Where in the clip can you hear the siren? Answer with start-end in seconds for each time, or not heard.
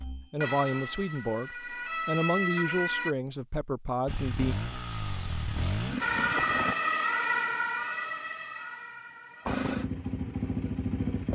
0.0-3.1, 6.0-9.7.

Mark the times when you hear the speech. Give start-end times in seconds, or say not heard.
0.1-4.5.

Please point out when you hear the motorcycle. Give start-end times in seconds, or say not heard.
4.0-6.8, 9.4-11.3.